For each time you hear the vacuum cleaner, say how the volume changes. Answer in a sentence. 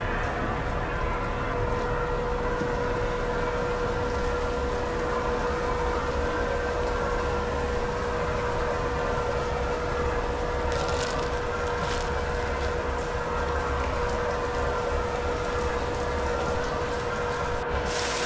The vacuum cleaner can be heard from 0.0 to 18.2 s, at a steady volume.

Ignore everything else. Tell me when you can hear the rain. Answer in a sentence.
The rain can be heard from 0.0 to 18.2 s.